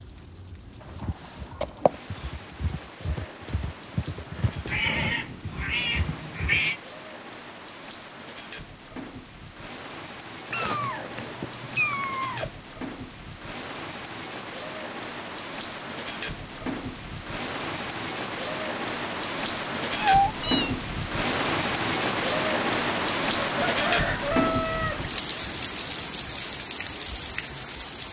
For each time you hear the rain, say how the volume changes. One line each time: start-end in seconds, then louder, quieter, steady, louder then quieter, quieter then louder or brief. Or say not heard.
0.0-28.0 louder.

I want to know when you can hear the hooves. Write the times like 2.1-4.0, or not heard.
0.8-6.6.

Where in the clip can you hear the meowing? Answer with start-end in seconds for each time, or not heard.
4.7-6.8, 10.5-12.5, 19.9-20.7.